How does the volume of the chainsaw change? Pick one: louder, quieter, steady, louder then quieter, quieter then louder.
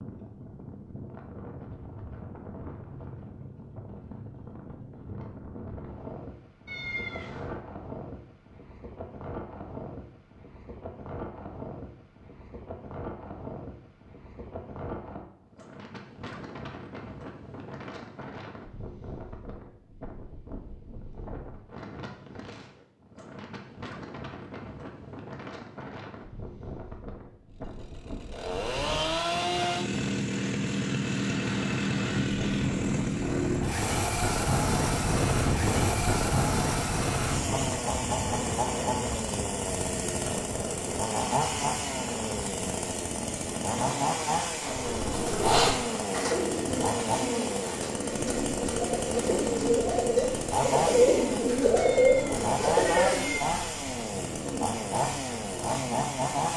steady.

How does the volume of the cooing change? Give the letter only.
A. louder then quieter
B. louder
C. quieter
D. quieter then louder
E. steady
D.